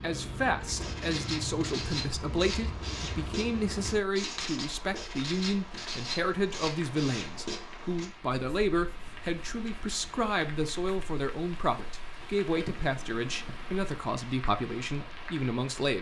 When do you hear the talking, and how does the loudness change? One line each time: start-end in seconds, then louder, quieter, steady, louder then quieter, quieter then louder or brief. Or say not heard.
0.0-15.9 steady.